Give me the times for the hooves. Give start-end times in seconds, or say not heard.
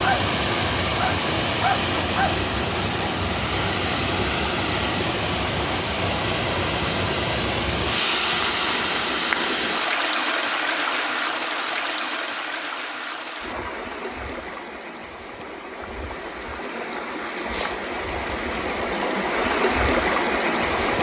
not heard.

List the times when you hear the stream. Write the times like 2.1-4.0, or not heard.
0.0-20.9.